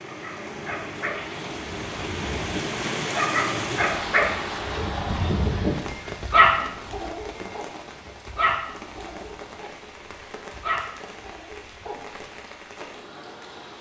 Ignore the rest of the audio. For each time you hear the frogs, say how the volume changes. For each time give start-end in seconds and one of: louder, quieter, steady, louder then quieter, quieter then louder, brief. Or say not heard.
not heard.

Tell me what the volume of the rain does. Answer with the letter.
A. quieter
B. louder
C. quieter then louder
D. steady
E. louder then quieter
A.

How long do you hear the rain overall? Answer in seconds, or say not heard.
14 s.